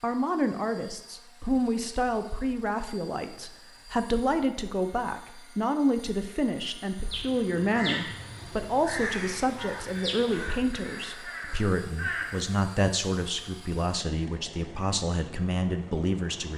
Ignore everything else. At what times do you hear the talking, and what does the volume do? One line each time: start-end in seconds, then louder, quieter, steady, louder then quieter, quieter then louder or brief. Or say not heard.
0.0-16.5 steady.